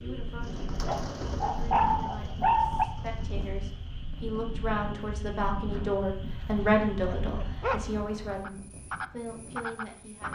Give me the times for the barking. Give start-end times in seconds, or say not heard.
0.8-2.9, 6.6-8.1.